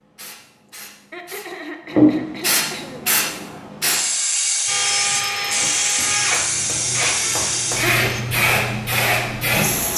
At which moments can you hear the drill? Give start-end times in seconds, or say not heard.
4.7-8.2.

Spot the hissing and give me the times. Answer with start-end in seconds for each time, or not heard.
0.0-9.9.